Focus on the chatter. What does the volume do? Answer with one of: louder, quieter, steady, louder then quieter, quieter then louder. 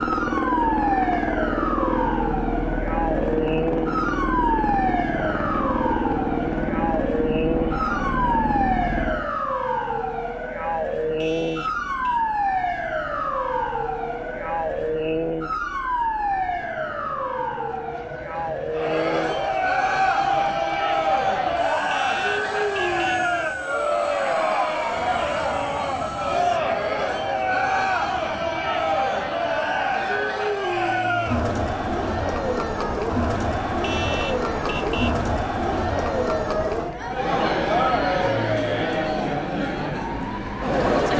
steady.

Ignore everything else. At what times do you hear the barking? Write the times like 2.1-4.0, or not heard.
not heard.